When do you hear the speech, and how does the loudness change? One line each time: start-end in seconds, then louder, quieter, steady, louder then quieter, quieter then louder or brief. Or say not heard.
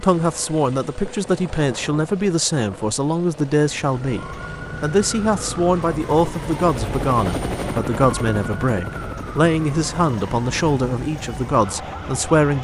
0.0-12.5 steady.